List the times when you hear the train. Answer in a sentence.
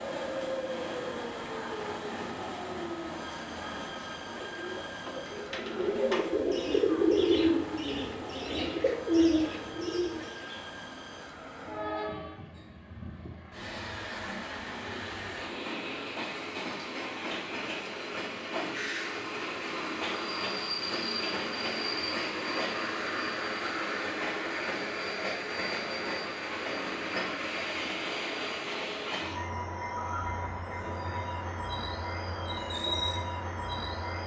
You can hear the train from 0.0 to 34.2 s.